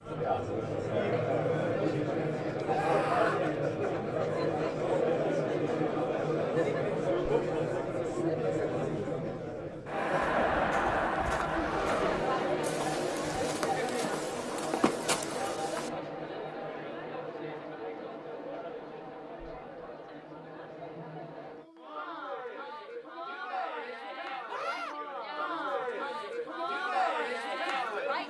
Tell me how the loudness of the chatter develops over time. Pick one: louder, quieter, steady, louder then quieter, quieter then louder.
quieter then louder.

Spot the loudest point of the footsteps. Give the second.
15 s.